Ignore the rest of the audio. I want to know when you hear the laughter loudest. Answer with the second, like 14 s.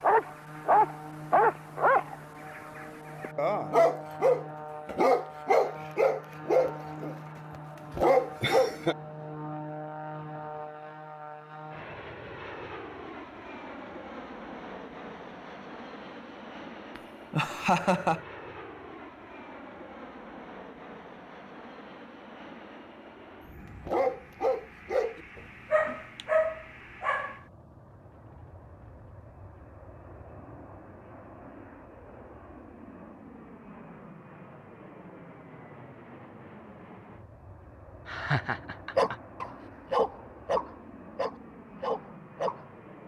18 s.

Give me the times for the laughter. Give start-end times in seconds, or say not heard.
7.9-8.9, 16.9-18.2, 38.0-39.1.